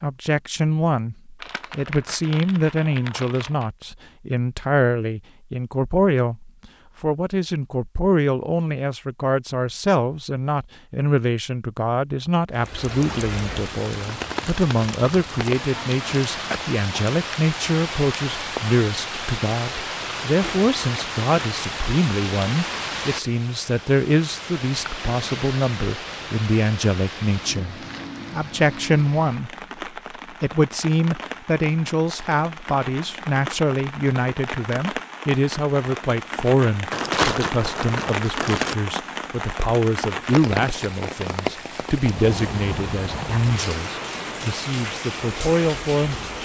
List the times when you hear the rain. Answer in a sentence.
You can hear the rain from 12.5 to 46.3 s.